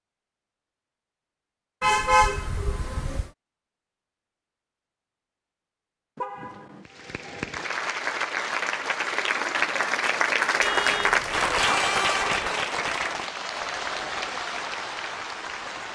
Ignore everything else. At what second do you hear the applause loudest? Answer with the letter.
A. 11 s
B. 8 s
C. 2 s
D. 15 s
A.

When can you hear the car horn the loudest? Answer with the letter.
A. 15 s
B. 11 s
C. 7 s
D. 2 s
D.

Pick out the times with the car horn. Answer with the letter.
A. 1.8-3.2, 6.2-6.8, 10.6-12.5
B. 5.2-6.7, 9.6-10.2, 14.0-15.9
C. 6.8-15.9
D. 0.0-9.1
A.